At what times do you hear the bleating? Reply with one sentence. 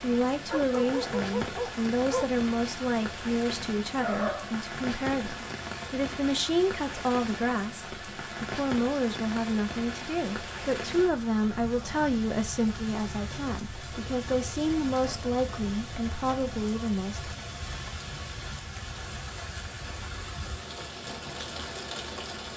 The bleating can't be heard in this clip.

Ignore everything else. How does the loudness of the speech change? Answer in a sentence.
The loudness of the speech stays about the same.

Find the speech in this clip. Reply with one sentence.
You can hear the speech from 0.0 to 17.4 s.